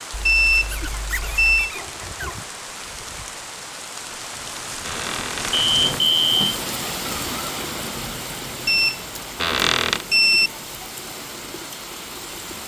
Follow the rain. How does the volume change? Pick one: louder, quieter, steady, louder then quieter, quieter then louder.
louder then quieter.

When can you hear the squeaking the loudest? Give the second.
10 s.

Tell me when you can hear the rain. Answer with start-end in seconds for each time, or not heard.
0.0-12.6.